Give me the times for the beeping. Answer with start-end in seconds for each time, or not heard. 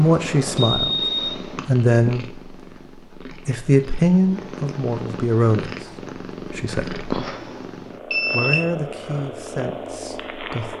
0.6-1.4, 8.1-8.7.